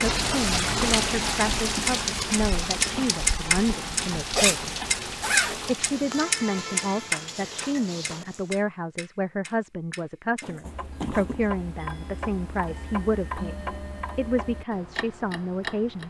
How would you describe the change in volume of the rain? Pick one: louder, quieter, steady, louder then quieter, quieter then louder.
quieter.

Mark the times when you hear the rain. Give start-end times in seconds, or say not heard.
0.0-8.6.